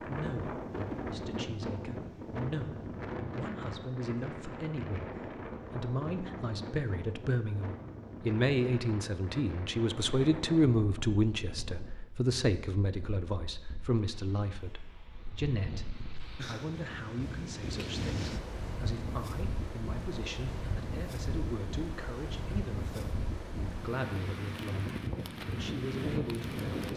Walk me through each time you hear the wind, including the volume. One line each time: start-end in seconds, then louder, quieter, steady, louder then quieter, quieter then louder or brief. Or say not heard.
0.0-26.9 quieter then louder.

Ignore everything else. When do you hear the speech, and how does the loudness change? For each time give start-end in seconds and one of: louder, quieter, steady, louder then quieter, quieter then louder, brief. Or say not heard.
0.0-26.9 louder then quieter.